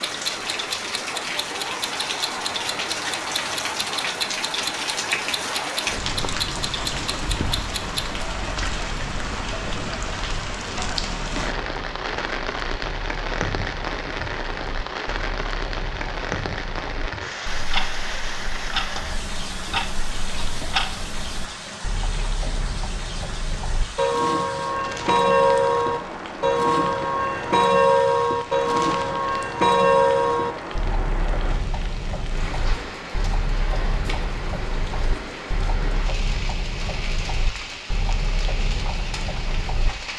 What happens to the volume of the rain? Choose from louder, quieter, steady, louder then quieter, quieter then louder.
quieter.